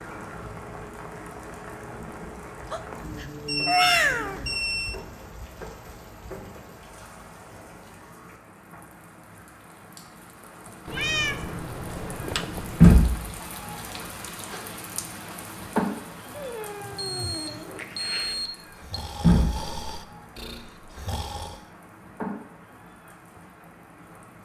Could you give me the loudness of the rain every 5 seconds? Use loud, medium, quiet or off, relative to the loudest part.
quiet, quiet, loud, medium, quiet.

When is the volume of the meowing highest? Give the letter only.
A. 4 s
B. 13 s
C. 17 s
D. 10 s
A.